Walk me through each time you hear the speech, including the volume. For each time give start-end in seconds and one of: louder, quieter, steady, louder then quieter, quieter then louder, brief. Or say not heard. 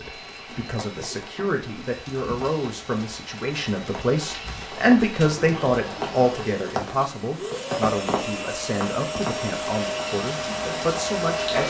0.0-11.6 louder then quieter.